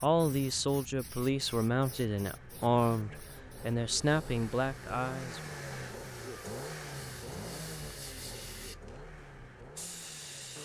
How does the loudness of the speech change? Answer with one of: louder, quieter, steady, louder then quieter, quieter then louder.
steady.